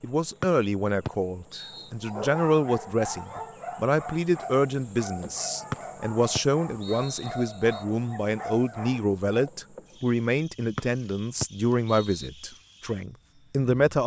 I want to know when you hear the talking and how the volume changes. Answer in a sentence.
The talking can be heard from 0.0 to 14.0 s, at a steady volume.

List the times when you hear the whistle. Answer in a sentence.
The whistle can be heard from 0.4 to 1.9 s, from 5.7 to 7.8 s and from 10.8 to 12.3 s.